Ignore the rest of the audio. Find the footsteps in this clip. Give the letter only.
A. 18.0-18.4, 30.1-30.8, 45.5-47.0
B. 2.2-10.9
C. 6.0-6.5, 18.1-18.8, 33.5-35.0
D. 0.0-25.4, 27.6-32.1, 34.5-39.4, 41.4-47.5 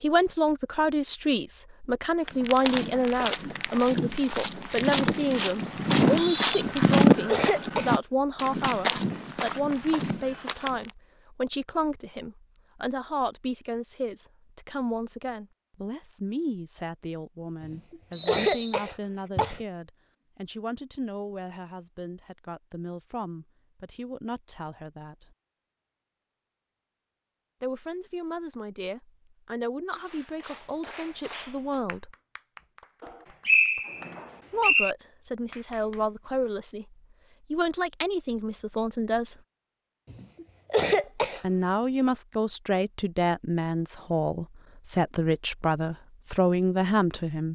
B.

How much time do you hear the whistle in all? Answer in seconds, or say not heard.
3 s.